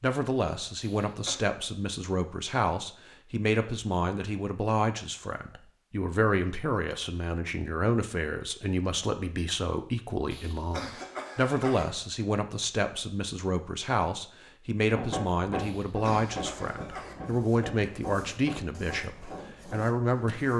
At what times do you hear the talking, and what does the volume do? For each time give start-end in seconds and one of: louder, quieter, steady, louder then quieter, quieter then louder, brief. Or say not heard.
0.0-20.5 steady.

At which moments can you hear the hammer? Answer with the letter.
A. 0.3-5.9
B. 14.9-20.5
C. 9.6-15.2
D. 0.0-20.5
B.